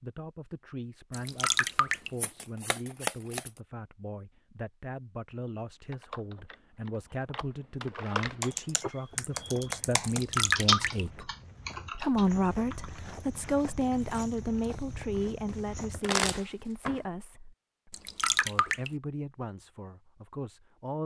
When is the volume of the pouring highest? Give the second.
11 s.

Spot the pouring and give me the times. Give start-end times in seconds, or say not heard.
1.1-2.1, 10.1-11.1, 17.9-18.9.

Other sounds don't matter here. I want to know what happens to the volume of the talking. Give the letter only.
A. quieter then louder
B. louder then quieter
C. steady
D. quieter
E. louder
B.